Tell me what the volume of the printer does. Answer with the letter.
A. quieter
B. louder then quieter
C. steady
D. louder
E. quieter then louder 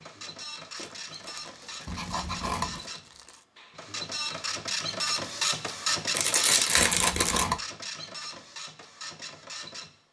B.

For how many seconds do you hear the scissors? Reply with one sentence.
You can hear the scissors for 2 seconds altogether.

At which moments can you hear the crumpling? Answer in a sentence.
The crumpling can be heard from 0.8 to 3.5 s and from 6.1 to 7.5 s.